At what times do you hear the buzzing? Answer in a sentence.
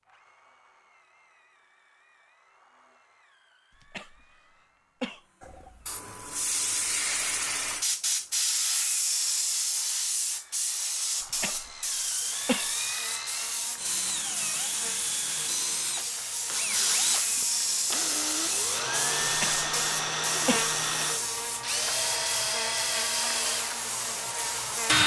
You can hear the buzzing from 11.8 to 25.0 s.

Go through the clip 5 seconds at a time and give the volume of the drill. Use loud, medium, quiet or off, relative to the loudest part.
quiet, quiet, medium, loud, loud.